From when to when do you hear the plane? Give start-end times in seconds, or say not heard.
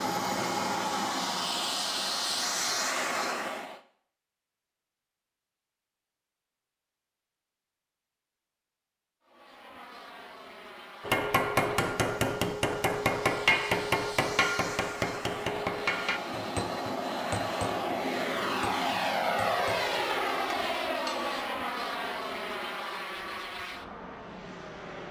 0.0-3.8, 9.2-25.0.